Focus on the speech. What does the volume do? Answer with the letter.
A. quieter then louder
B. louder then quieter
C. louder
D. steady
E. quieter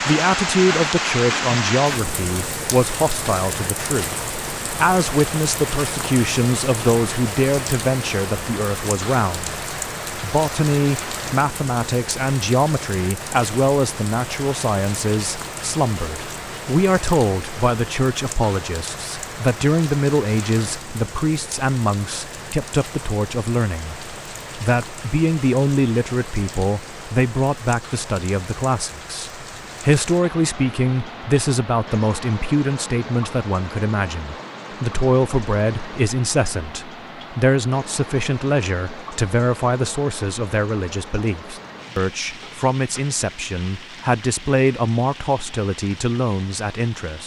D.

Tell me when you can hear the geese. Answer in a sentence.
You can't hear the geese here.